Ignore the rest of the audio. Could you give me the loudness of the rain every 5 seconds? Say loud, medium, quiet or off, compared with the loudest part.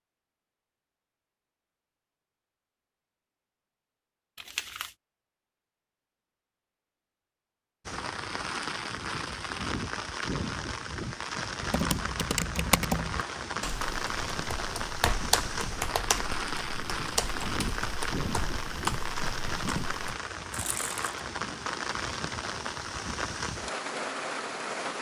off, loud, loud, loud, loud.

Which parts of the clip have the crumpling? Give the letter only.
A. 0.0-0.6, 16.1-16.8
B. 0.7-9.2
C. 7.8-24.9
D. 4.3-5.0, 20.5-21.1
D.